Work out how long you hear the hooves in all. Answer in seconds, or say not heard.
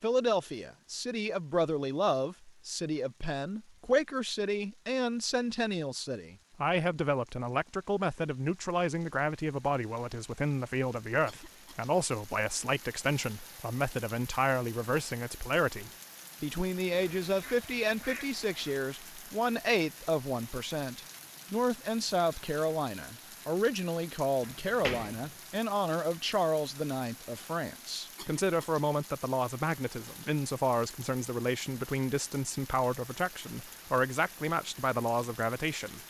not heard.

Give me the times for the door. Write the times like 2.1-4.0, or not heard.
24.4-25.3.